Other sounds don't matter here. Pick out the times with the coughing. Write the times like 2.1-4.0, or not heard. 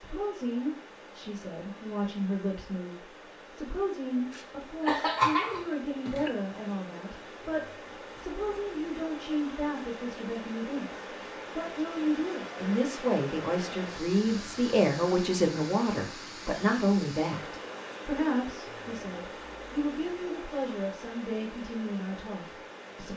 4.3-6.3.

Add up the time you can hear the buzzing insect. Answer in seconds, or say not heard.
not heard.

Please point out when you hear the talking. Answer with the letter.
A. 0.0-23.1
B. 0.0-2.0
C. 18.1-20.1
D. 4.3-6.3
A.